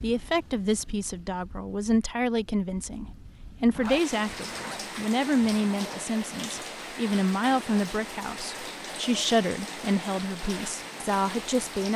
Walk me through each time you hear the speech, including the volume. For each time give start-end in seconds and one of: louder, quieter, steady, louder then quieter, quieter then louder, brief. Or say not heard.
0.0-11.9 steady.